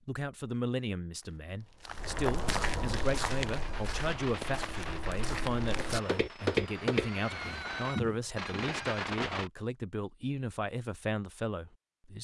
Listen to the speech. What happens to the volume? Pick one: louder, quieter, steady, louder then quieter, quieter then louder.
steady.